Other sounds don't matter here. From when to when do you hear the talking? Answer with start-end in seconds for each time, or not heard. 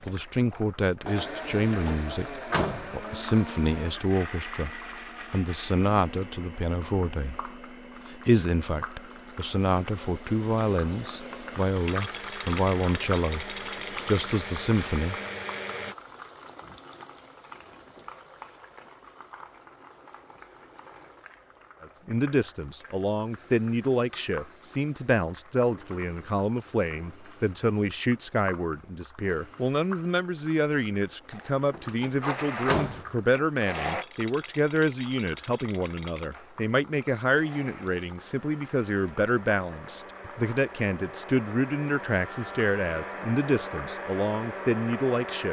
0.0-15.2, 21.8-45.4.